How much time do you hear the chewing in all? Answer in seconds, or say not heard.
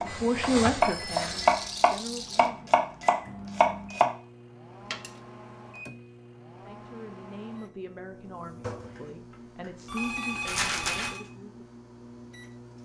not heard.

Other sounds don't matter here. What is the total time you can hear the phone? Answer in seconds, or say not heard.
3 s.